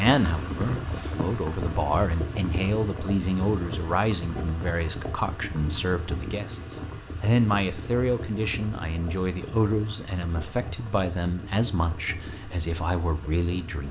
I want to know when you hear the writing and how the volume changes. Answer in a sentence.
The writing can't be heard in this clip.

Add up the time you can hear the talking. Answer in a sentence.
The talking can be heard for 14 seconds in total.